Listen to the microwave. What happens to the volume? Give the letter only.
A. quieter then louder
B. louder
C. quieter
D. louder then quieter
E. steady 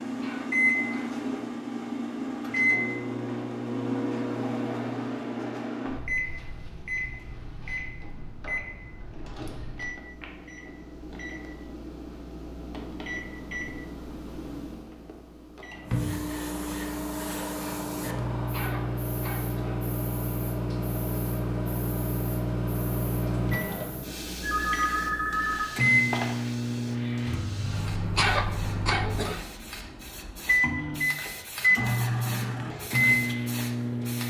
A.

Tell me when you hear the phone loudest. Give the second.
25 s.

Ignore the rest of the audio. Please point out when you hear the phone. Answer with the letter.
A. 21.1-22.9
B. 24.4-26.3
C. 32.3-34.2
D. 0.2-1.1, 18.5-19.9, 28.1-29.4
B.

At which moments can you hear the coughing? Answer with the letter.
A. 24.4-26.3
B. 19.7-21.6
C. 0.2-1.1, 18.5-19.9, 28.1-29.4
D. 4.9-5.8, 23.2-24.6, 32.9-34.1
C.